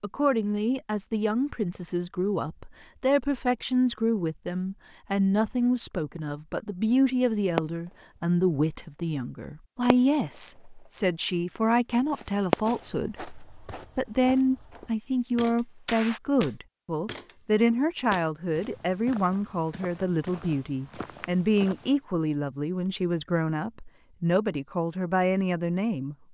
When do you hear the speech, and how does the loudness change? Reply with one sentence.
The speech can be heard from 0.0 to 26.1 s, at a steady volume.